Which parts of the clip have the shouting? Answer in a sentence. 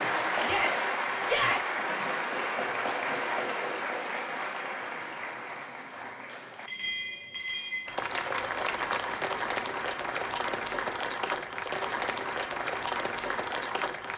The shouting can be heard from 0.4 to 1.8 s.